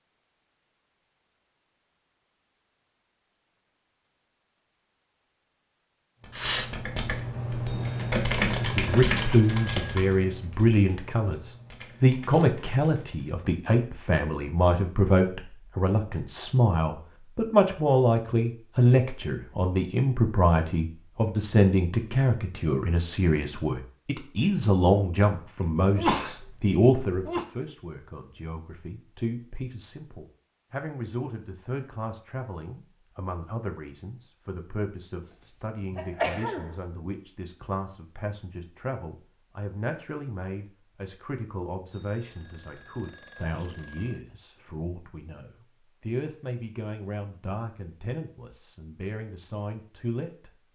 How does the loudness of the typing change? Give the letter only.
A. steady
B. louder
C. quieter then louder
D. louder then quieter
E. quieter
D.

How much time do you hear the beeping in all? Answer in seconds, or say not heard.
5 s.